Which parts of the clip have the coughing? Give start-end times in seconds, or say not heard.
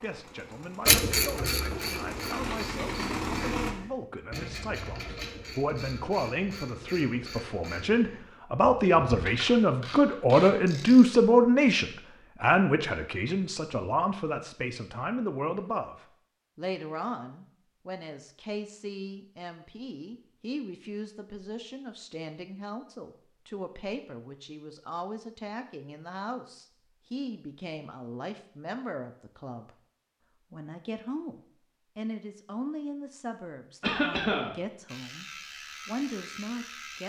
33.8-34.5.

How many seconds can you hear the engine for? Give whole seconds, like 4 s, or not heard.
4 s.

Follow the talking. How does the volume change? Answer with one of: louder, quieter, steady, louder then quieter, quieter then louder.
louder then quieter.